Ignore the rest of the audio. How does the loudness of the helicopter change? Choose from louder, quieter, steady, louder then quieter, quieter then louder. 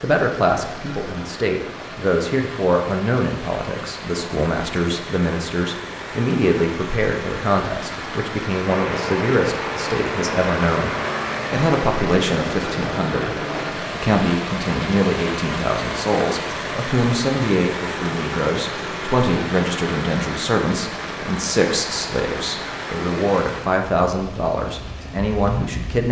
steady.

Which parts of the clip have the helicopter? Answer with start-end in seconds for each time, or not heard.
8.7-13.8.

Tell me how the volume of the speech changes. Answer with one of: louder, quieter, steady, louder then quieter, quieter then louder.
steady.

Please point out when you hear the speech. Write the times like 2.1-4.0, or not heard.
0.0-10.9, 11.5-26.0.